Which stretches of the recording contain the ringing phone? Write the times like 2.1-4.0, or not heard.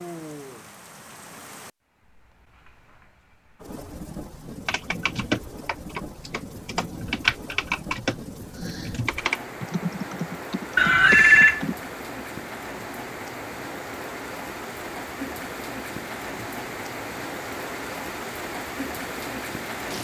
10.8-11.6.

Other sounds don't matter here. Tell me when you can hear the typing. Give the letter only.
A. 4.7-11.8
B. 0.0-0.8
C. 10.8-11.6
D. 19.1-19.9
A.